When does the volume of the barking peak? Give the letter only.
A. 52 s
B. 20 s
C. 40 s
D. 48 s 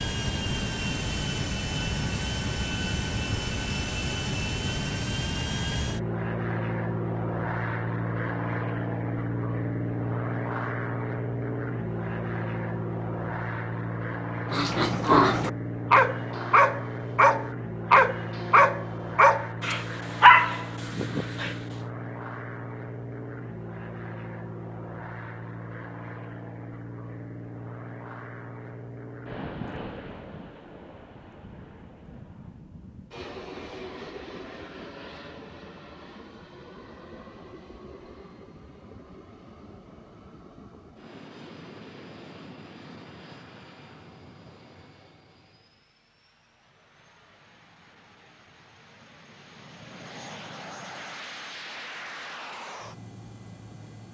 B.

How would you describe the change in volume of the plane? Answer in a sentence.
The loudness of the plane goes down.